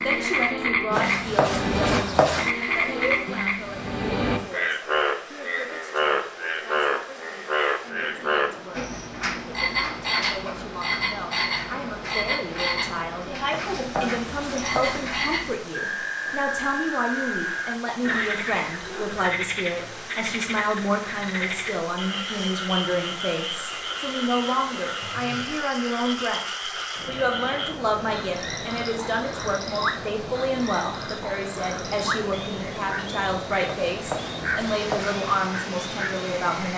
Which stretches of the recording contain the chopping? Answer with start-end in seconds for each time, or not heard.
0.9-2.5, 13.5-15.1, 33.9-35.2.